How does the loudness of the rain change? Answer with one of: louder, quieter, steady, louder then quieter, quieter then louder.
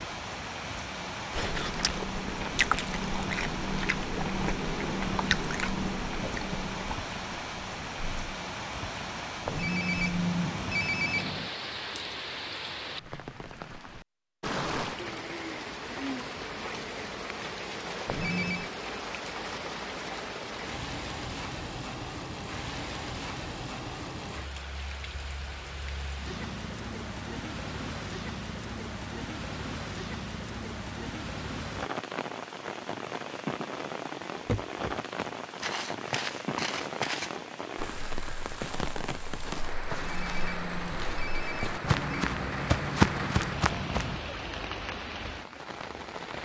steady.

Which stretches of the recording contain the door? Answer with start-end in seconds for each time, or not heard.
not heard.